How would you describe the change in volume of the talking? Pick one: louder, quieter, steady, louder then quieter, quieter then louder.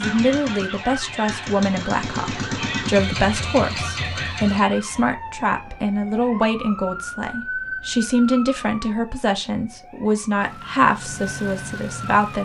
steady.